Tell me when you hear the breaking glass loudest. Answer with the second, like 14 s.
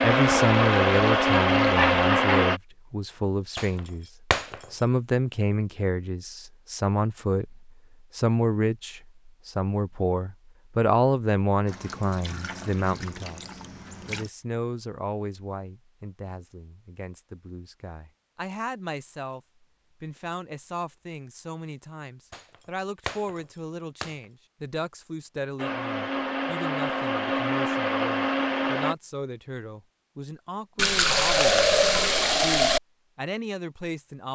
4 s.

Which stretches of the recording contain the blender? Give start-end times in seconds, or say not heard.
0.0-2.6, 25.6-28.9.